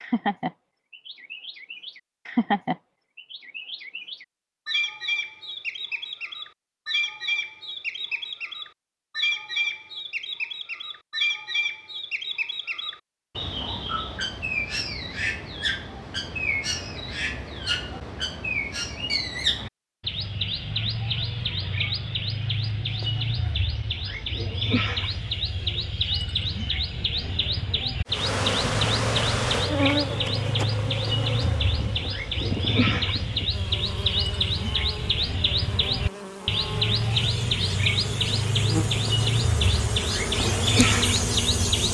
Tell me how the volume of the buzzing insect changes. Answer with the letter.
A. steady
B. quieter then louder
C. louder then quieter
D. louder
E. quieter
B.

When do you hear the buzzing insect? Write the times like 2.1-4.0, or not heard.
28.1-41.9.